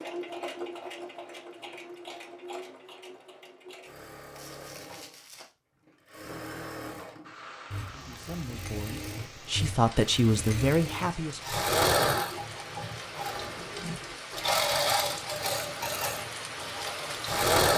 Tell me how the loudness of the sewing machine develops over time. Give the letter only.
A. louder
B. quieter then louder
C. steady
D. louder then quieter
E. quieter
A.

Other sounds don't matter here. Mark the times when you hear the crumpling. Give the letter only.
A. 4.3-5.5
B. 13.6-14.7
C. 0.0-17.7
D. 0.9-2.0
A.